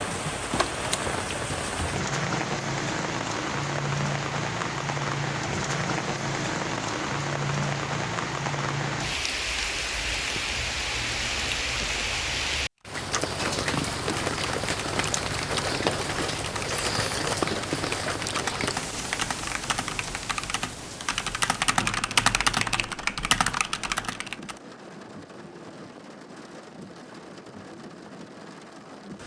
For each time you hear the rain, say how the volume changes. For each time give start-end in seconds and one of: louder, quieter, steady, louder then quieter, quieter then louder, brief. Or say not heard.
0.0-29.2 quieter.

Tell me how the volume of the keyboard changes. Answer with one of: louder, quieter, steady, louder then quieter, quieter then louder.
louder.